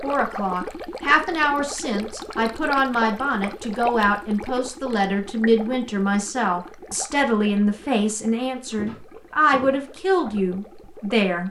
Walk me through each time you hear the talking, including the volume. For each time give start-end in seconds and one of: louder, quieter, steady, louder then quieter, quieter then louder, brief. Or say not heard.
0.0-11.4 steady.